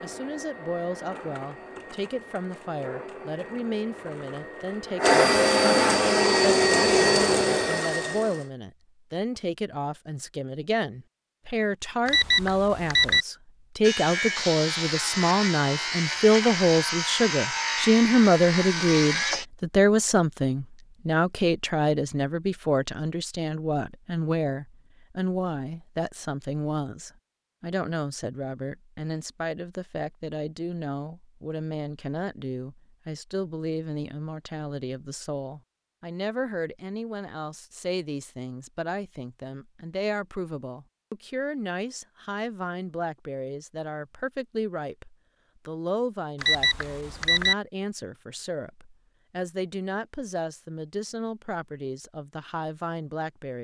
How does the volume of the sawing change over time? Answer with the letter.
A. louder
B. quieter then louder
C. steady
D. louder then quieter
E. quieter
C.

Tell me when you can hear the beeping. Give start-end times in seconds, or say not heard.
12.1-13.2, 46.4-47.5.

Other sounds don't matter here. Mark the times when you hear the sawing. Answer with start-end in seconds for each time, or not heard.
13.8-19.4.